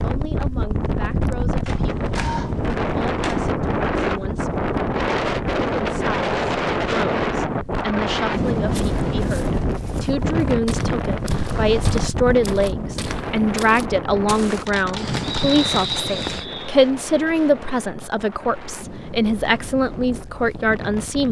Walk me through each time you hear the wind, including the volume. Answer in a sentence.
The wind can be heard from 0.0 to 21.2 s, getting quieter.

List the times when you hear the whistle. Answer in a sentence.
You can hear the whistle from 15.4 to 16.8 s.